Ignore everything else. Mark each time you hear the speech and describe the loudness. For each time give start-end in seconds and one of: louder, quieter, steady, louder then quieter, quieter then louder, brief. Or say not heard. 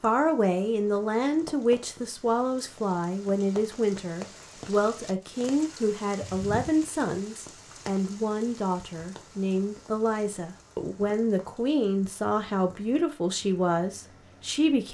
0.0-14.9 steady.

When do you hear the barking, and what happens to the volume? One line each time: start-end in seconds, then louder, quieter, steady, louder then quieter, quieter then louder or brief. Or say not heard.
not heard.